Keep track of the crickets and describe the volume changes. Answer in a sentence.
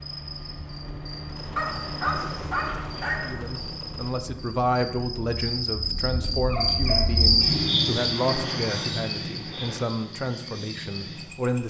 The loudness of the crickets goes up, then down.